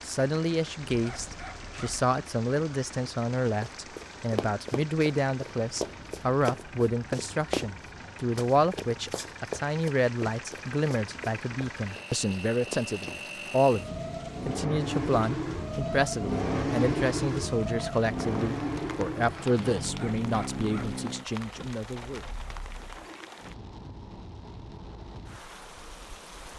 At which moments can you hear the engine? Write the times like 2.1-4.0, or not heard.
0.0-23.4.